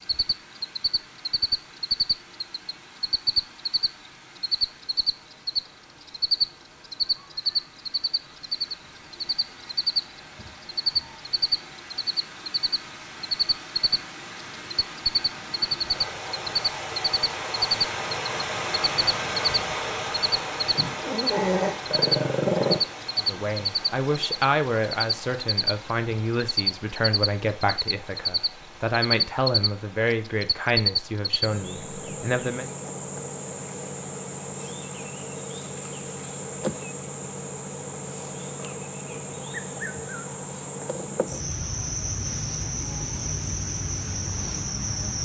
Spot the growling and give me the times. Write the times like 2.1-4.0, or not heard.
20.8-22.8.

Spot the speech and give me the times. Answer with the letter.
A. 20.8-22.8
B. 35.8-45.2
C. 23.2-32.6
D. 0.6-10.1
C.